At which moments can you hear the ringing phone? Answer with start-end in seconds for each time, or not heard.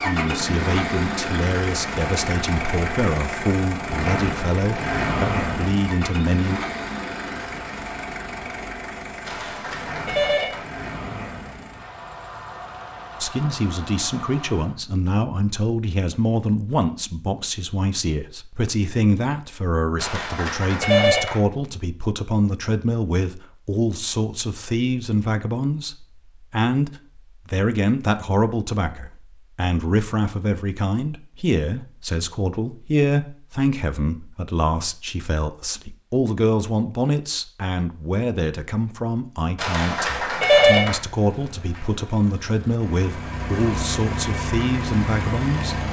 9.2-10.7, 19.9-21.4, 39.5-41.0.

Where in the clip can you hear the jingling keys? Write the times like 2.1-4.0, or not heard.
not heard.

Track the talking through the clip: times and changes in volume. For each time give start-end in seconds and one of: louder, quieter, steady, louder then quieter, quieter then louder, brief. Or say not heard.
0.0-6.6 steady
13.2-45.8 steady.